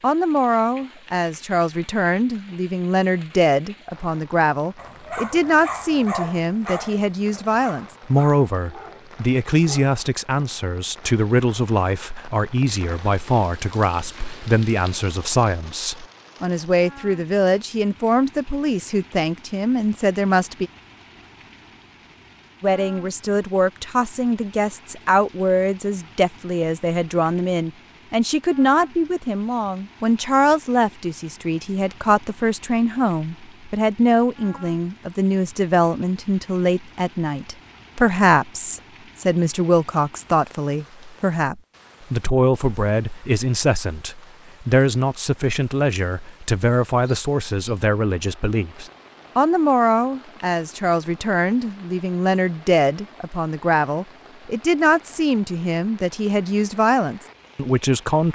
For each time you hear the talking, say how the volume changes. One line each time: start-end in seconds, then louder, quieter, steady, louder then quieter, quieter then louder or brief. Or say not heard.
0.0-20.7 steady
22.6-58.3 steady.